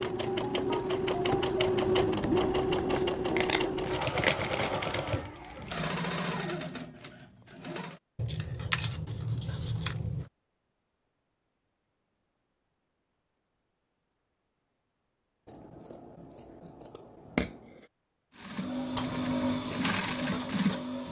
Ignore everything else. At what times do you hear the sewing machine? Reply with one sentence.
The sewing machine can be heard from 0.0 to 8.0 s and from 18.3 to 21.0 s.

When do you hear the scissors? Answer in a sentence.
The scissors can be heard from 2.9 to 4.8 s, from 8.2 to 10.3 s and from 15.4 to 17.9 s.